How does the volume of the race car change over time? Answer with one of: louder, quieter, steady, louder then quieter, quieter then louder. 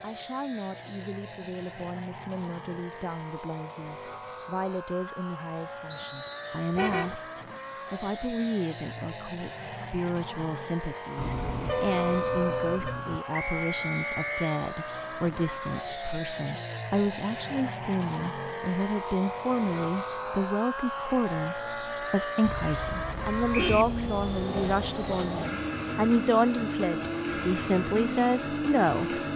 louder.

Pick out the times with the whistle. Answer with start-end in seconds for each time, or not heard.
5.9-6.7, 13.3-14.6, 23.5-23.9.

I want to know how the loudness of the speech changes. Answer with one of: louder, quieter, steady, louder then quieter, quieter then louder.
louder.